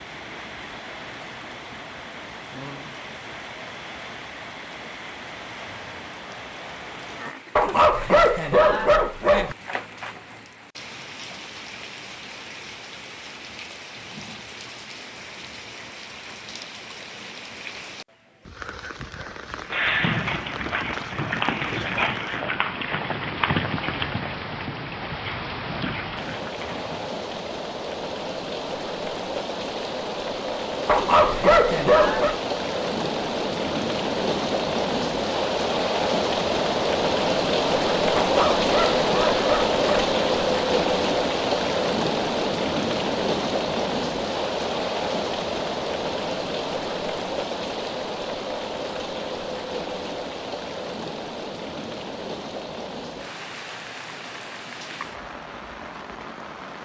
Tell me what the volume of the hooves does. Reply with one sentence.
The volume of the hooves goes down.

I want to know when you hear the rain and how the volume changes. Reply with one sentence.
The rain can be heard from 0.0 to 56.8 s, getting louder then quieter.